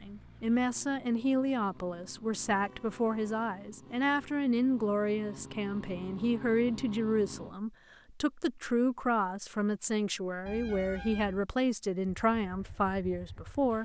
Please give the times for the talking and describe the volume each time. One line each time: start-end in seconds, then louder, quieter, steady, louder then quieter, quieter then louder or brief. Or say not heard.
0.0-13.8 steady.